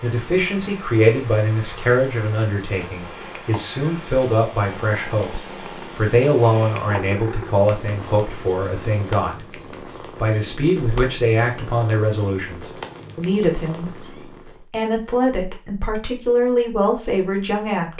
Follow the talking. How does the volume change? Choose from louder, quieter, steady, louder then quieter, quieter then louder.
steady.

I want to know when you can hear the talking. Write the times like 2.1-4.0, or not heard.
0.0-9.3, 10.2-14.1, 14.7-17.9.